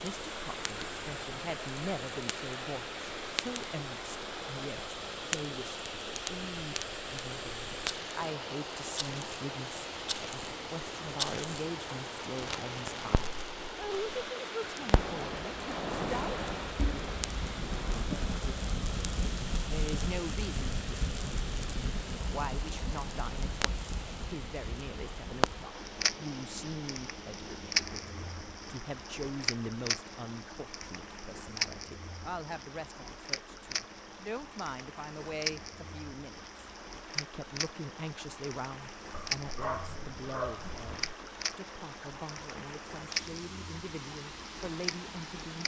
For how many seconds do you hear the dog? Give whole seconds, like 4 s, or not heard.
2 s.